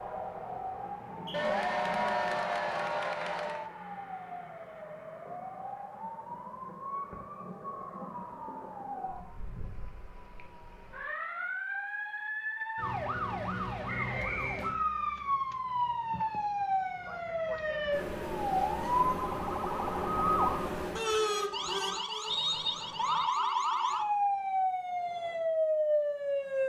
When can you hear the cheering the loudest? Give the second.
2 s.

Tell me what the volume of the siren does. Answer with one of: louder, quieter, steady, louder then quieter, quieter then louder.
louder.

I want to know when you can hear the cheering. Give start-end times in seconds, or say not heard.
1.3-3.7.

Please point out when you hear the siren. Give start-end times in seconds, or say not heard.
0.0-26.6.